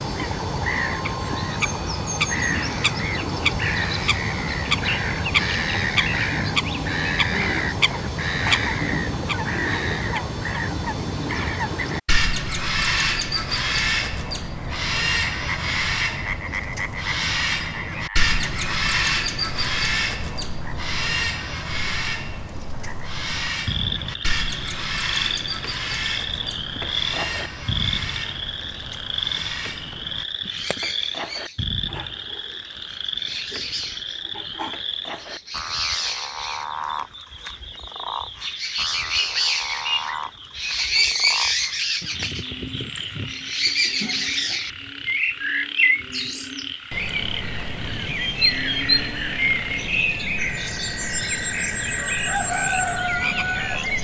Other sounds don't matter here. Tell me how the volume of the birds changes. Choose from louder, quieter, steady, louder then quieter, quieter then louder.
quieter then louder.